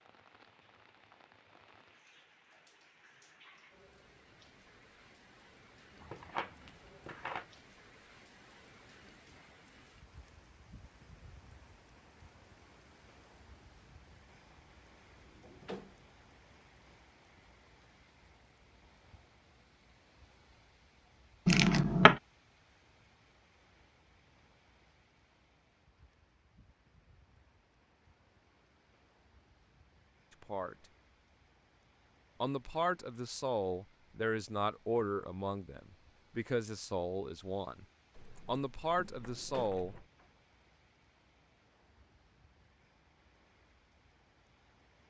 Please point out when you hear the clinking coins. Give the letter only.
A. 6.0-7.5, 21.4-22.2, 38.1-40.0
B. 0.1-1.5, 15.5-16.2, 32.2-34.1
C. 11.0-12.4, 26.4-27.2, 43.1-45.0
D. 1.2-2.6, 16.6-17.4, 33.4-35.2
A.